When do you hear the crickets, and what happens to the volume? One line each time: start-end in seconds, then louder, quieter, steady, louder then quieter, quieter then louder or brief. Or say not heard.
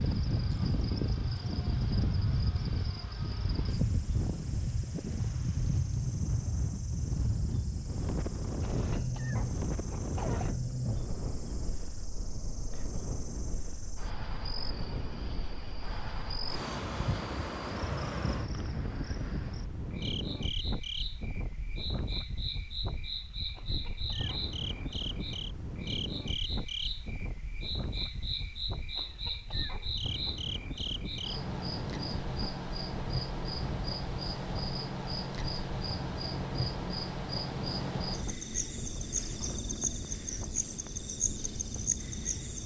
0.0-42.6 louder.